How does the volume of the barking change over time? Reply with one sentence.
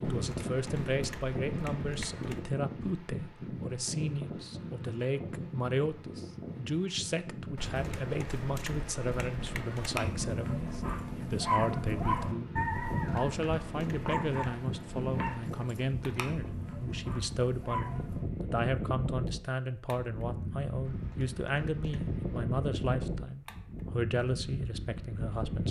The volume of the barking goes down.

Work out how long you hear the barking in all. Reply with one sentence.
You can hear the barking for 8 seconds altogether.